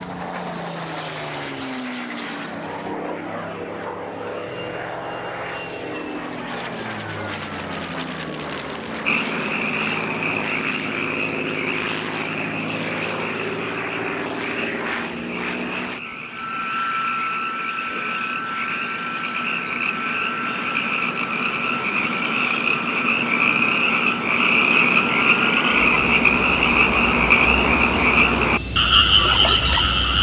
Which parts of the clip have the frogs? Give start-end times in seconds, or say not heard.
9.1-30.1.